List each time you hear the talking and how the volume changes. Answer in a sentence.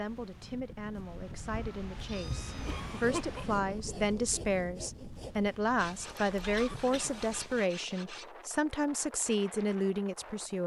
You can hear the talking from 0.0 to 10.6 s, getting louder.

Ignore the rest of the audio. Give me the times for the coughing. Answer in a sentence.
The coughing can be heard from 2.6 to 3.5 s and from 6.5 to 7.2 s.